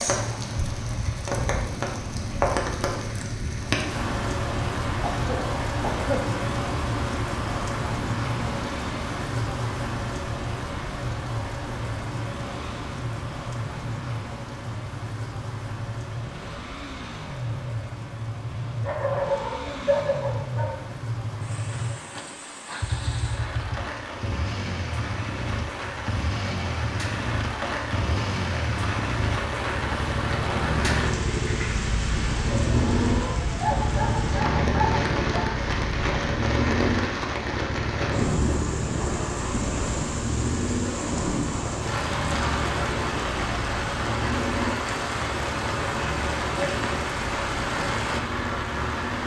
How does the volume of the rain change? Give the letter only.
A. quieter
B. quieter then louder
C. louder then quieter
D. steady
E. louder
B.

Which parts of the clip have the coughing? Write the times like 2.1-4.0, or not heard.
5.0-6.2.